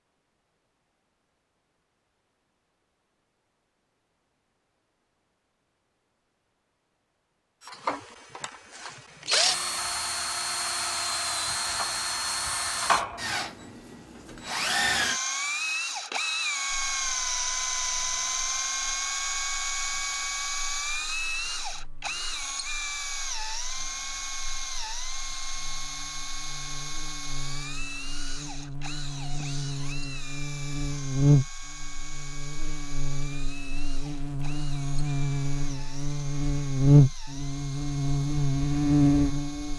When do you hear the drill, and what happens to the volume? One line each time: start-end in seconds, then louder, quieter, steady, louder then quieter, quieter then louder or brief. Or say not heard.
7.6-39.7 quieter.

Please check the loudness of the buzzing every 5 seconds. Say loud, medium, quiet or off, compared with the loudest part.
off, off, off, quiet, quiet, quiet, medium, loud.